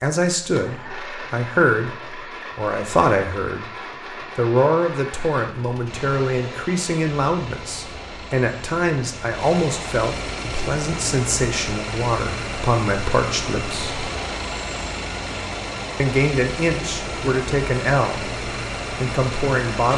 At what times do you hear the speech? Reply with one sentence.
You can hear the speech from 0.0 to 3.7 s, from 4.3 to 14.1 s and from 16.0 to 19.9 s.